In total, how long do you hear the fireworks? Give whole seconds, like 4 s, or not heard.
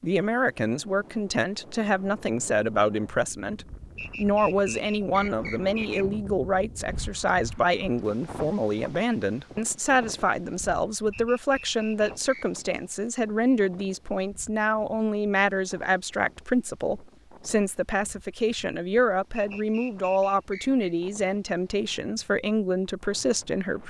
not heard.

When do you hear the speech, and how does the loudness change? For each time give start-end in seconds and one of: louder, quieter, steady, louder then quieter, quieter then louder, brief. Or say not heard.
0.0-23.8 steady.